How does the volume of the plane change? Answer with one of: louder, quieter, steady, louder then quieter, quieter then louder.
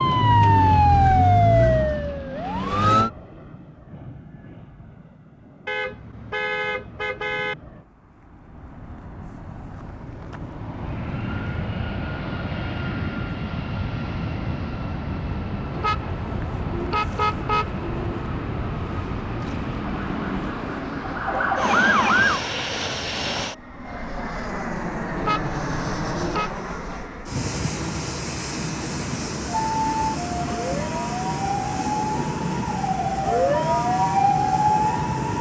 louder.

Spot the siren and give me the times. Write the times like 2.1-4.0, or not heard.
0.0-3.1, 20.0-22.4, 29.4-35.3.